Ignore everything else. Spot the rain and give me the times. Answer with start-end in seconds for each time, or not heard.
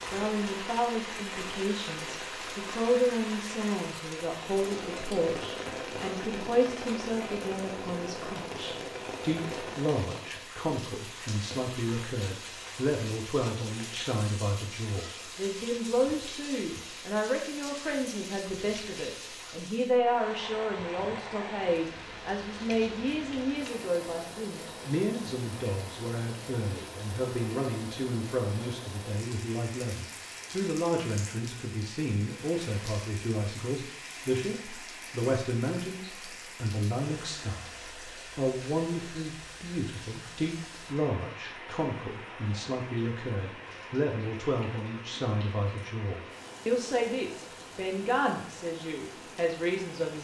0.0-50.2.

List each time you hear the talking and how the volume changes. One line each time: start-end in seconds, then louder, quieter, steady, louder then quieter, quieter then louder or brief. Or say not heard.
0.1-50.2 steady.